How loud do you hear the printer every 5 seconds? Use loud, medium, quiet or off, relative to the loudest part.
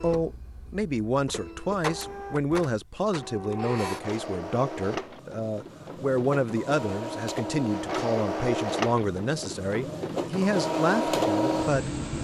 medium, medium, loud.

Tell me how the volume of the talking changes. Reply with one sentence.
The loudness of the talking stays about the same.